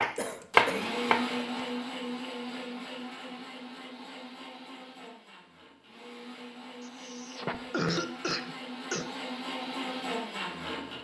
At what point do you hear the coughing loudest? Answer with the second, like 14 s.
8 s.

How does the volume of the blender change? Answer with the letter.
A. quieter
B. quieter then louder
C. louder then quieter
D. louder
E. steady
B.